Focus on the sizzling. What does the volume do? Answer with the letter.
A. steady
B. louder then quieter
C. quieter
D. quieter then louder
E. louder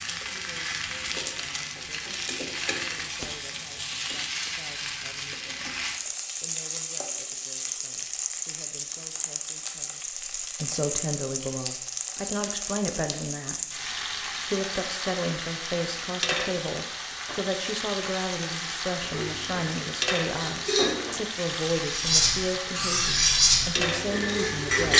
A.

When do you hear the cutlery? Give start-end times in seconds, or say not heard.
19.0-24.9.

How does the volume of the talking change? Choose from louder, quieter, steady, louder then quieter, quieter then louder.
louder.